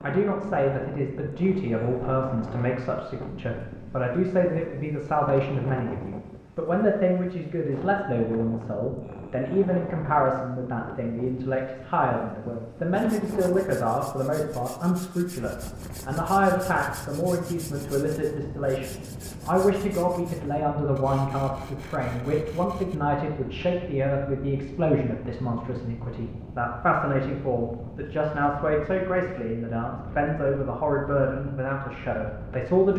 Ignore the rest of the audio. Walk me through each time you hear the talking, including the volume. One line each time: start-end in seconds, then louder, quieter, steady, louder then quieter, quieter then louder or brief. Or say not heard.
0.0-32.9 steady.